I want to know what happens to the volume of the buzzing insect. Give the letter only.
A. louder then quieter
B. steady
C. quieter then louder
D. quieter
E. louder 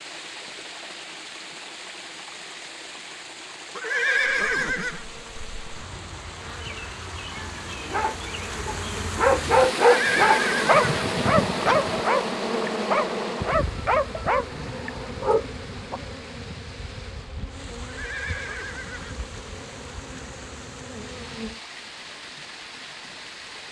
A.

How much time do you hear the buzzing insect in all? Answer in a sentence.
The buzzing insect can be heard for 17 seconds in total.